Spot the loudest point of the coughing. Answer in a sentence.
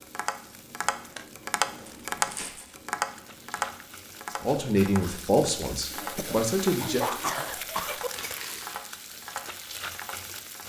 The loudest moment of the coughing is at 7 seconds.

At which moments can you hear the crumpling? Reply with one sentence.
The crumpling can be heard from 1.9 to 2.8 s and from 8.1 to 8.9 s.